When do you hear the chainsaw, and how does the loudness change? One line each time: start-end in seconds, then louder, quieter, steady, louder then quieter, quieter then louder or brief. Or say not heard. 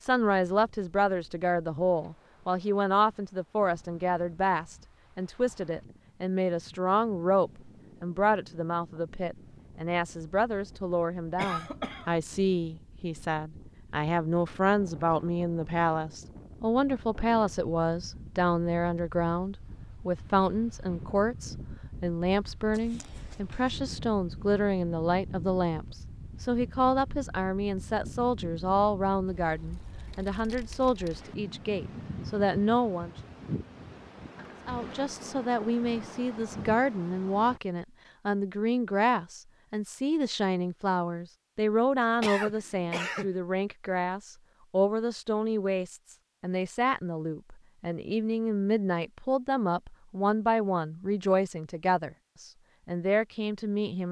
not heard.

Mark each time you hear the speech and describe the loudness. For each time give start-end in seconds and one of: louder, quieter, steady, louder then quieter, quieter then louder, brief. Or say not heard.
0.0-33.1 steady
34.6-54.0 steady.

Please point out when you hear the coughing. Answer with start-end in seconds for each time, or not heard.
11.3-12.1, 22.7-23.7, 42.2-43.4.